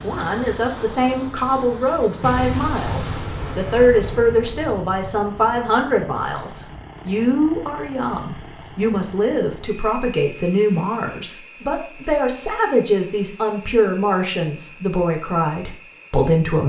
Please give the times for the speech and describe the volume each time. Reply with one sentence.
You can hear the speech from 0.0 to 16.6 s, at a steady volume.